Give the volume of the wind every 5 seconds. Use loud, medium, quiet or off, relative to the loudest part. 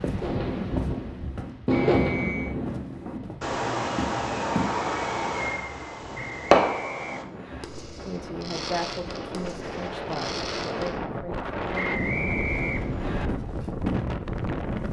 medium, medium, loud.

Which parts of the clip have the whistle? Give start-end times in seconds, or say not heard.
1.9-2.5, 6.2-7.7, 11.8-13.3.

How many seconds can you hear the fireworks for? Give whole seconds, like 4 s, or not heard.
11 s.